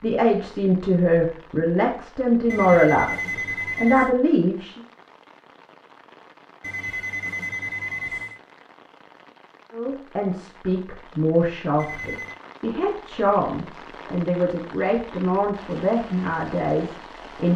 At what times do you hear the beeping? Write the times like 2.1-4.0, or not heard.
2.5-4.2, 6.6-8.4, 11.8-12.4.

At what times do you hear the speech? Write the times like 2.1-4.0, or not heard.
0.0-4.8, 9.7-17.5.